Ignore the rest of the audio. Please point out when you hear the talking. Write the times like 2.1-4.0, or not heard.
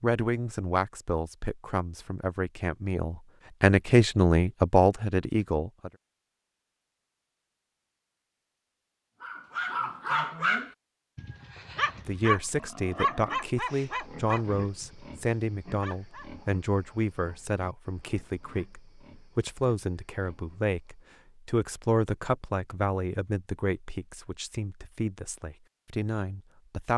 0.0-5.9, 12.1-26.9.